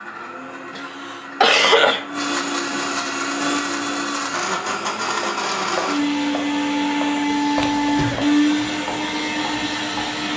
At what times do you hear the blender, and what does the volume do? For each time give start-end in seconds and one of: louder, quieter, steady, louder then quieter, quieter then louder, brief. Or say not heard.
0.0-10.3 louder.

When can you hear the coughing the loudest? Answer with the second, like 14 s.
2 s.